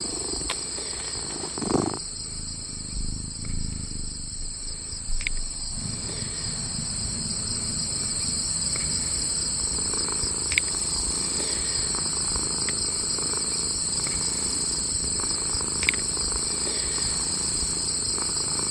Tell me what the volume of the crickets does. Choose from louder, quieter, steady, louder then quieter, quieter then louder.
louder.